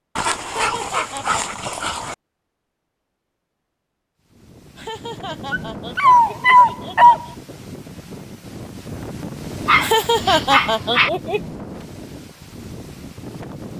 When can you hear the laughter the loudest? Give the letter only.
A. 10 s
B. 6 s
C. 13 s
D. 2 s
A.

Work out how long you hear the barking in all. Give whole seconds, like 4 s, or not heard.
5 s.